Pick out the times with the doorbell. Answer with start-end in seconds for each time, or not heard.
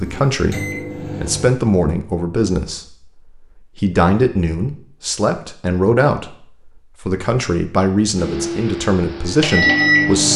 not heard.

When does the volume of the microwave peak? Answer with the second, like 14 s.
10 s.